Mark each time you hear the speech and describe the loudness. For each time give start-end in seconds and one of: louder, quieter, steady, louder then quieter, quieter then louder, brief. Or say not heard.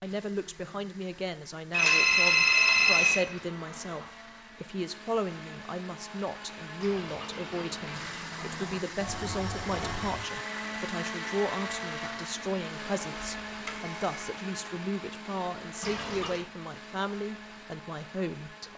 0.0-18.7 steady.